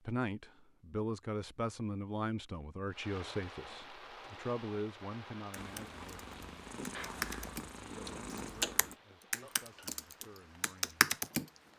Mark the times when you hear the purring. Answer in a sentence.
You can hear the purring from 5.5 to 9.0 s.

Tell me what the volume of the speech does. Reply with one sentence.
The volume of the speech goes down.